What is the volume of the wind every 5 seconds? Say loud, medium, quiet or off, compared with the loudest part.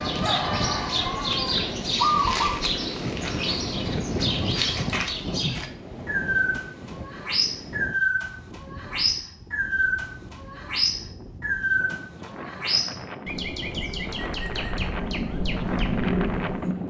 loud, medium, medium, loud.